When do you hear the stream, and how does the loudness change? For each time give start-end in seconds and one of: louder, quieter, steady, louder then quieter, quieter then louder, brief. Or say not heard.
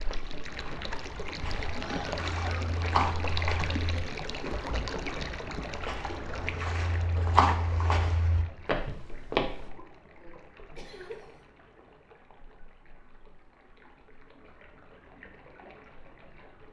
0.0-16.6 quieter.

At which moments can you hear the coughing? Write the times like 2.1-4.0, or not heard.
1.8-2.8, 10.2-11.3.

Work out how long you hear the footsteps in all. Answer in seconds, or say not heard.
9 s.